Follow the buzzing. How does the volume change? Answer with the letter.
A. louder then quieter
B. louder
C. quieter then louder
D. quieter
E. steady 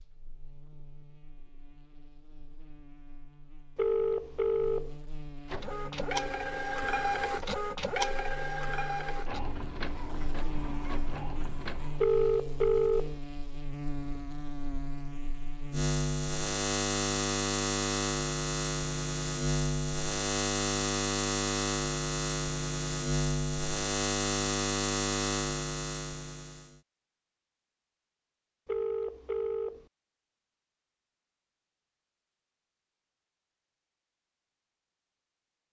B.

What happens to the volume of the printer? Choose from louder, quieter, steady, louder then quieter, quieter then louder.
quieter.